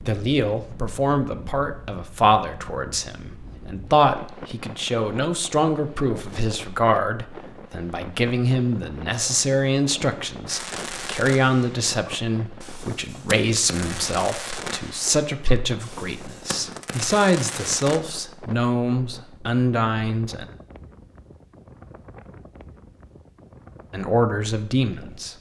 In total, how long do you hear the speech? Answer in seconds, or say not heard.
22 s.